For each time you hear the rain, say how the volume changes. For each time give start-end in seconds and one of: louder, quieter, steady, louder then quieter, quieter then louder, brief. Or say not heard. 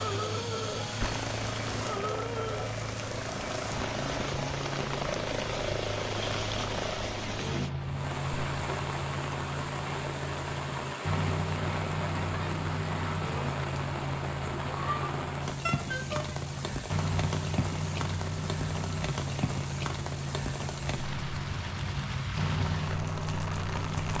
0.0-24.1 steady.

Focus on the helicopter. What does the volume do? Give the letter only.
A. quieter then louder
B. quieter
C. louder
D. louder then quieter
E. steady
E.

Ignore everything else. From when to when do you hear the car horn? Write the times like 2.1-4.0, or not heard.
15.7-16.4.